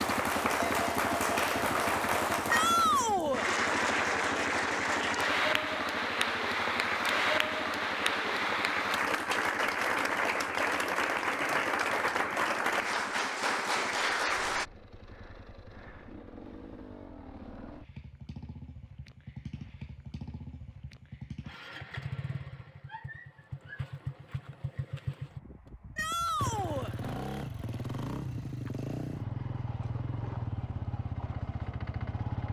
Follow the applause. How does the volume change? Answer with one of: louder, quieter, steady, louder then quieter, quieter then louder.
steady.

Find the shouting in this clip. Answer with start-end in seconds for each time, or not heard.
2.5-3.5, 25.9-26.9.